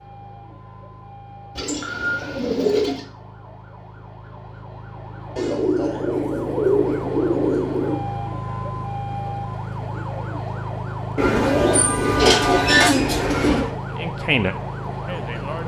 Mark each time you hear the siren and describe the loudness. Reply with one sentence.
The siren can be heard from 0.0 to 15.6 s, getting louder.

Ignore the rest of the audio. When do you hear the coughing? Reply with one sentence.
You can't hear the coughing here.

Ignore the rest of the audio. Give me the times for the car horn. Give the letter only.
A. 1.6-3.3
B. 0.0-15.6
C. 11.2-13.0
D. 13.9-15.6
C.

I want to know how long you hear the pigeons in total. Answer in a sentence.
The pigeons can be heard for 7 seconds in total.